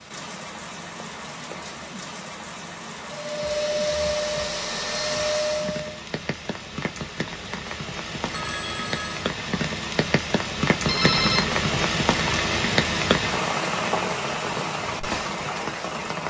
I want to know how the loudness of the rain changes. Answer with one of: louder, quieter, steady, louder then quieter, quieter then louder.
louder.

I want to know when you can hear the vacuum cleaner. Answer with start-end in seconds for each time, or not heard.
3.0-6.0.